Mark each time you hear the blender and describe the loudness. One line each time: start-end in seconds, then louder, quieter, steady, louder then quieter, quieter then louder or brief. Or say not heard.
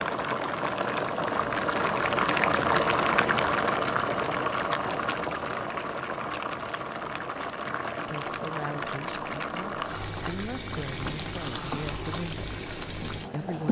not heard.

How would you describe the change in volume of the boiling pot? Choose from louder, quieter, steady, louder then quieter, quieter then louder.
quieter.